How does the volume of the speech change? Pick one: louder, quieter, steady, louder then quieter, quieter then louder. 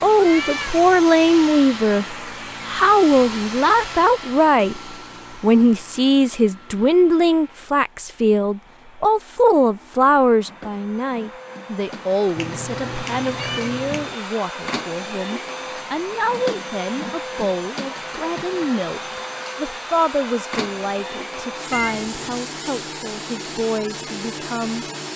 quieter.